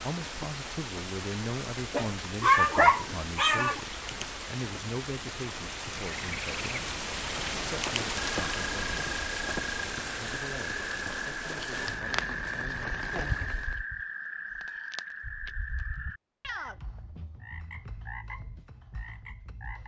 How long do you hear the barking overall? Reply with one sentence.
The barking can be heard for 2 seconds in total.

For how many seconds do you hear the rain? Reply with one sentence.
The rain can be heard for 14 seconds in total.